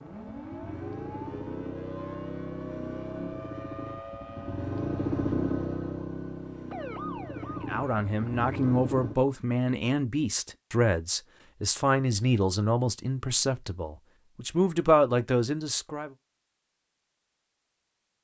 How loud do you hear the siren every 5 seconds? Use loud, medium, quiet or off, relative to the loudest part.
loud, loud, off, off.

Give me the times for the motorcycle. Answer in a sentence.
You can hear the motorcycle from 0.1 to 9.2 s.